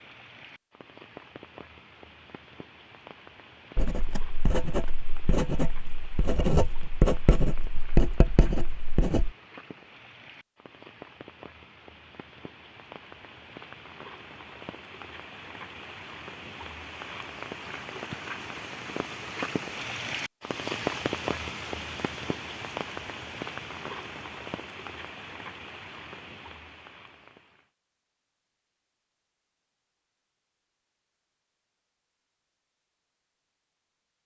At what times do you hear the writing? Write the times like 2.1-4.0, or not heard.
3.8-9.3.